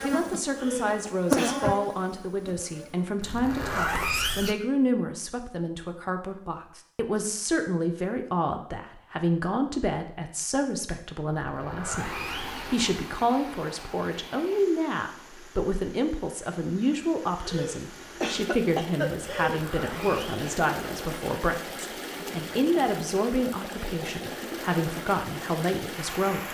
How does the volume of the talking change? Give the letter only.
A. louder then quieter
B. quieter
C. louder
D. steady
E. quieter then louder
D.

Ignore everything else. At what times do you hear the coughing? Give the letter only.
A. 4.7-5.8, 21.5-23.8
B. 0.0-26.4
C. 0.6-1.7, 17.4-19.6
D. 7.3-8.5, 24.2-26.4
C.